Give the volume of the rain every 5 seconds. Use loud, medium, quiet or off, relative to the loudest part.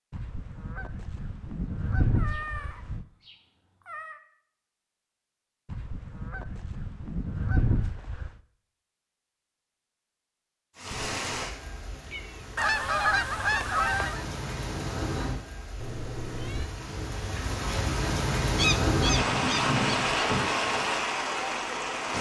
off, off, medium, loud, loud.